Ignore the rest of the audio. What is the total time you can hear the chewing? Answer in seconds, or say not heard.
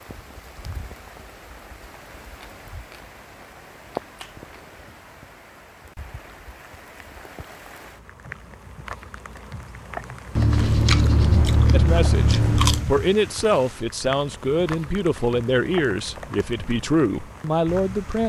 5 s.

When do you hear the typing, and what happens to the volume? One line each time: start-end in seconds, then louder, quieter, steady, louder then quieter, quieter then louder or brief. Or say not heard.
not heard.